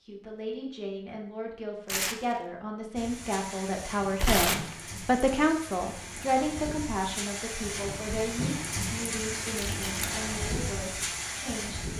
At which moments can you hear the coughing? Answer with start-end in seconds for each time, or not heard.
not heard.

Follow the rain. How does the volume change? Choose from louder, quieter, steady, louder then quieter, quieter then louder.
louder.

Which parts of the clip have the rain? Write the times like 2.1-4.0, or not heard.
3.0-11.9.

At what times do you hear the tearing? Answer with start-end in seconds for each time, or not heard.
1.9-2.4, 4.2-4.8, 9.6-10.2.